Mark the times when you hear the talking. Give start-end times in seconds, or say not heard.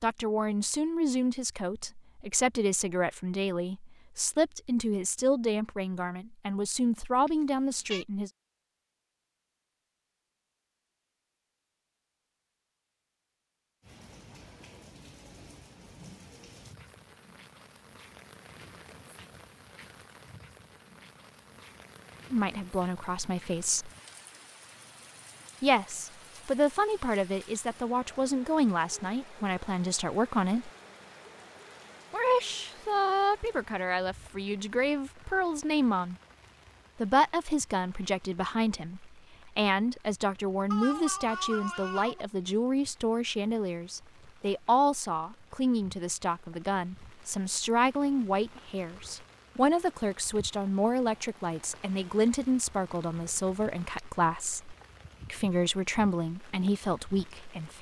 0.0-8.3, 22.3-23.9, 25.6-30.7, 32.1-36.1, 37.0-57.7.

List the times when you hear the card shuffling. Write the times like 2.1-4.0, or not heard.
not heard.